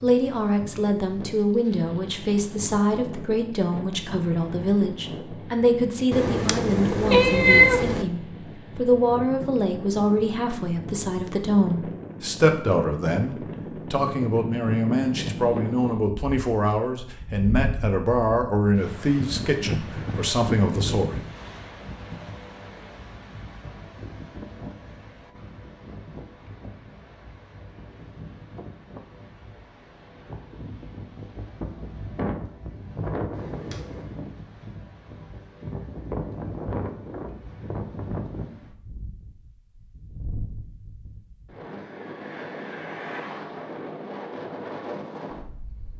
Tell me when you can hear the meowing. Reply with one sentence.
The meowing can be heard from 6.1 to 8.1 s and from 33.3 to 34.1 s.